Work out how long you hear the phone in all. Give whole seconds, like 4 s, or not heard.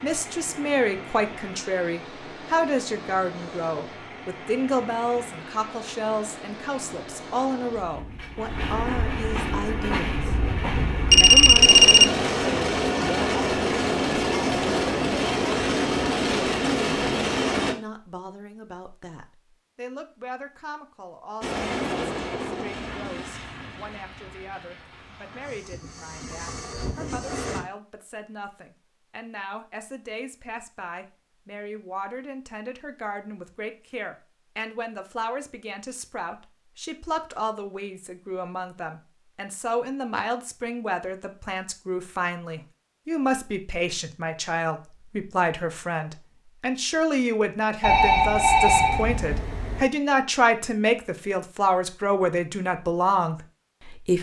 3 s.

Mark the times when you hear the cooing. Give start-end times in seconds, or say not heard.
not heard.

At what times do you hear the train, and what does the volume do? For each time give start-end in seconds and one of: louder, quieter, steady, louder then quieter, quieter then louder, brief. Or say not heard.
0.0-17.8 louder
21.4-27.6 quieter then louder.